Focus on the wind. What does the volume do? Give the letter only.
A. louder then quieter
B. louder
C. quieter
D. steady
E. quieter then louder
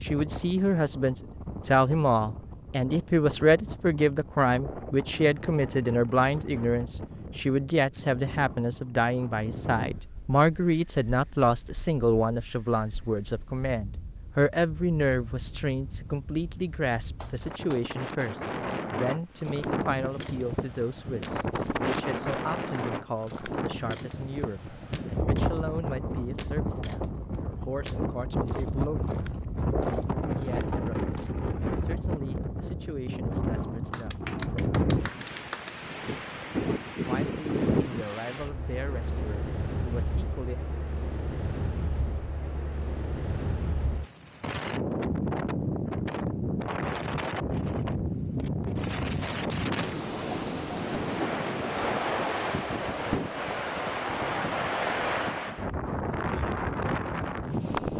B.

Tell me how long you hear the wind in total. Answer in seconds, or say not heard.
58 s.